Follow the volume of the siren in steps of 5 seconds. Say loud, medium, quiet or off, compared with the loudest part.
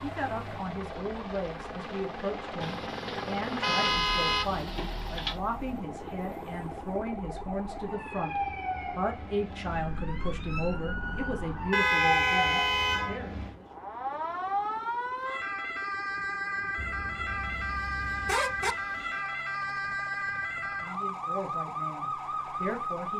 medium, medium, loud, loud, loud.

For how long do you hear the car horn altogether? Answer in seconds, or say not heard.
6 s.